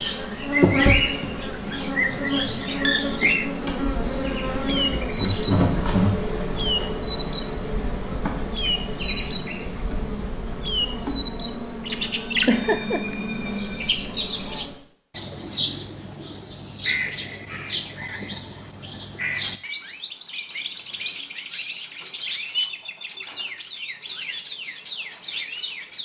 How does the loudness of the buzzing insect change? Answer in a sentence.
The volume of the buzzing insect goes down.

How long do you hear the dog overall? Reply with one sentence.
The dog can't be heard in this clip.